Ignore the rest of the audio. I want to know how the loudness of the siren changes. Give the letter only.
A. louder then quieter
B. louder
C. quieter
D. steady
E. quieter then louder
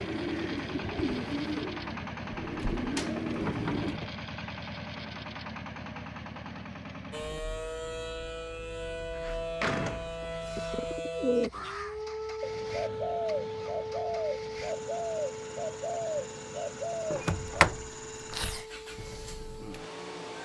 C.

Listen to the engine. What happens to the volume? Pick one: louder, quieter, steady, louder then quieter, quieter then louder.
quieter then louder.